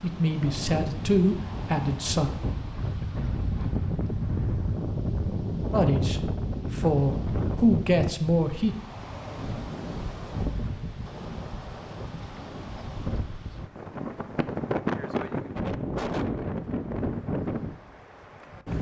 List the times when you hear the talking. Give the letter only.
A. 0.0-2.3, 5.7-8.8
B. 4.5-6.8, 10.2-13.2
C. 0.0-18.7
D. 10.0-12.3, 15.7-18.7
A.